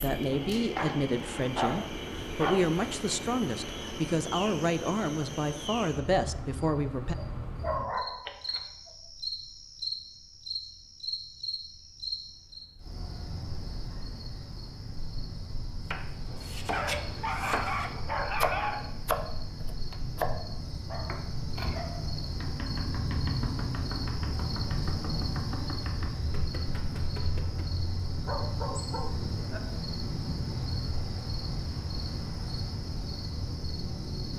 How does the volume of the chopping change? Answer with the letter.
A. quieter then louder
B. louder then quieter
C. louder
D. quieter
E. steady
D.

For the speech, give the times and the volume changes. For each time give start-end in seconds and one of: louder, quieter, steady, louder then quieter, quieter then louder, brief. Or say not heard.
0.0-7.2 steady.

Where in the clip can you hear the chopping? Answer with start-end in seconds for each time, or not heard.
15.9-27.8.